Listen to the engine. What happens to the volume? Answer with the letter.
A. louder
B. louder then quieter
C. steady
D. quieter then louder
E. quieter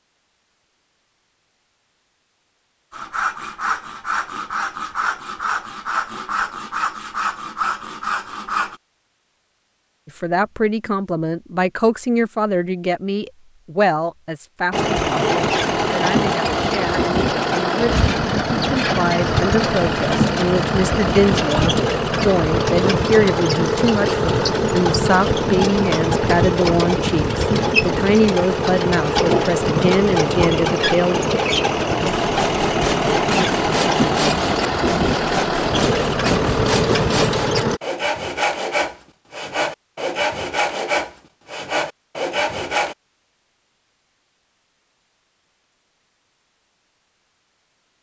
C.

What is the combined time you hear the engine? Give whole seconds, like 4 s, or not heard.
23 s.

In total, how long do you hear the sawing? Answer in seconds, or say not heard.
17 s.